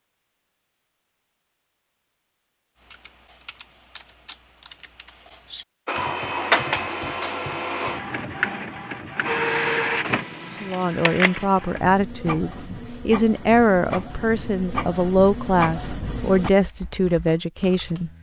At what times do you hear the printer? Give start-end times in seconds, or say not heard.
5.8-16.5.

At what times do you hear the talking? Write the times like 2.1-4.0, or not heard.
10.6-18.1.